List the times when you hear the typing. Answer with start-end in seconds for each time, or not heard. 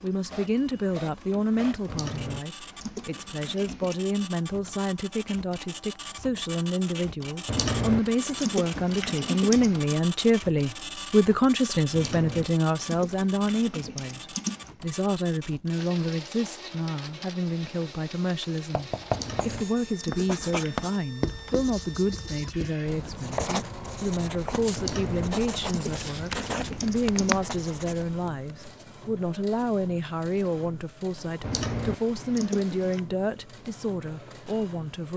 1.9-4.0, 7.5-9.9, 11.9-14.8, 19.1-20.8, 24.8-27.4, 31.4-33.0.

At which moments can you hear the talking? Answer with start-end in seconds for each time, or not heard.
0.0-35.1.